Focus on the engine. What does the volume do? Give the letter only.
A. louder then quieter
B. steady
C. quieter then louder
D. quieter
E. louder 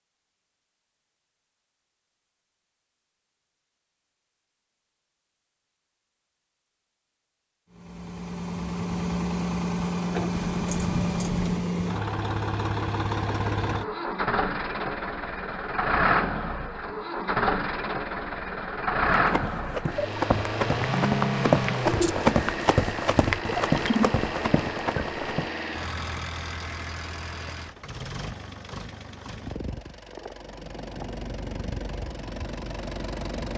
D.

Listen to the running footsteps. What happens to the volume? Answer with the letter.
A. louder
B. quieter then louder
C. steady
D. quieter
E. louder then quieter
E.